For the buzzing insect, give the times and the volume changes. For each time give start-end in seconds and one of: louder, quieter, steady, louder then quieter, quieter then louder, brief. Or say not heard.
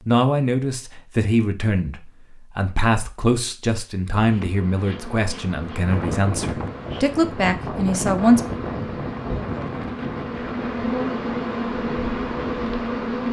4.2-13.2 louder.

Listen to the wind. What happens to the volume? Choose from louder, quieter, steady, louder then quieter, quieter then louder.
quieter.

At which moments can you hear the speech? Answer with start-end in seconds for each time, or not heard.
0.1-8.4.